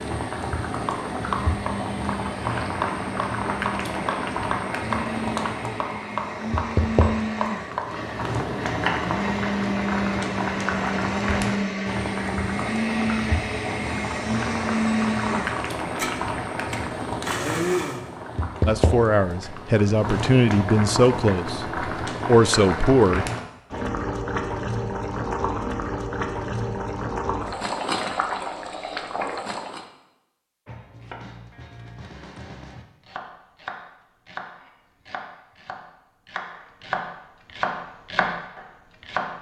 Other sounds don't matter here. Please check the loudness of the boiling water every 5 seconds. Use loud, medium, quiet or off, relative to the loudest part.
loud, loud, loud, loud, loud, loud, off, off.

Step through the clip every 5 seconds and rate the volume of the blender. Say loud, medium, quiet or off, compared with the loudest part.
medium, loud, loud, loud, off, off, off, off.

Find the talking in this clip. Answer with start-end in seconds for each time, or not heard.
18.6-23.2.